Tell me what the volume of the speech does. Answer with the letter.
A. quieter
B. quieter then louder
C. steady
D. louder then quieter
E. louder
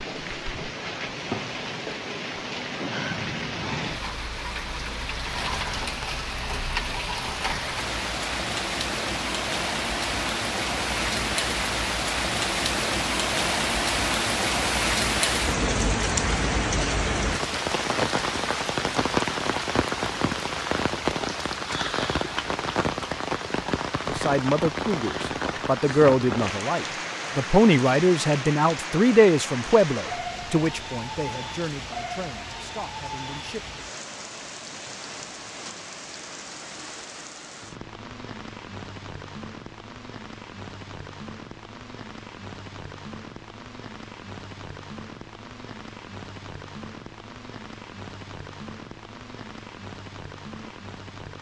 A.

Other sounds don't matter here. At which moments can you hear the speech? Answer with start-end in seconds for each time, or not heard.
24.1-33.9.